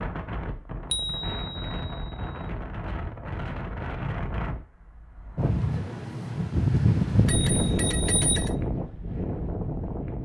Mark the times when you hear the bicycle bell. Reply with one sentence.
You can hear the bicycle bell from 0.9 to 2.4 s and from 7.2 to 8.6 s.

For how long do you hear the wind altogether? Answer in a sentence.
The wind can be heard for 10 seconds in total.